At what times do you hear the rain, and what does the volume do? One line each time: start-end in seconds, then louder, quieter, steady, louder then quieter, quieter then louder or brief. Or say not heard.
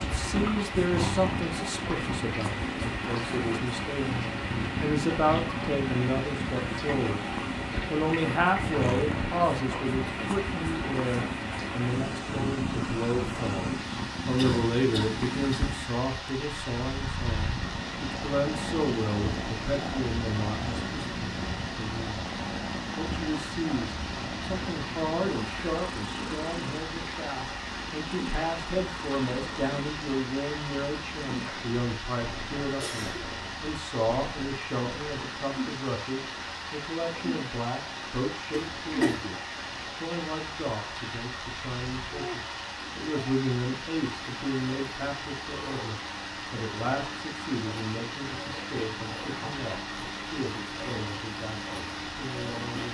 0.0-52.9 steady.